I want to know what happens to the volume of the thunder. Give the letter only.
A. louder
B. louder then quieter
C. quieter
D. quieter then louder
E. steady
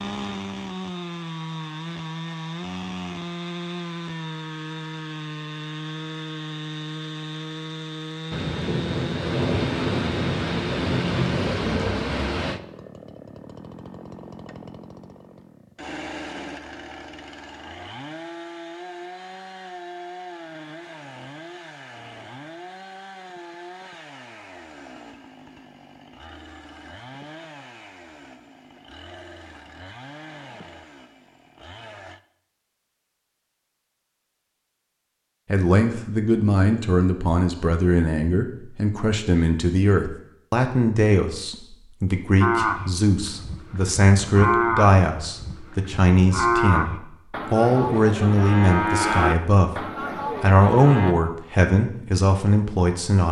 E.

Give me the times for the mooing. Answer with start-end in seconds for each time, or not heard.
42.4-51.1.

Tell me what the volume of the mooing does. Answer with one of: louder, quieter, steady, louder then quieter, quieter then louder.
louder.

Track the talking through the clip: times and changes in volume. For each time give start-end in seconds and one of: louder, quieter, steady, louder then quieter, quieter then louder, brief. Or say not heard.
35.5-53.2 steady.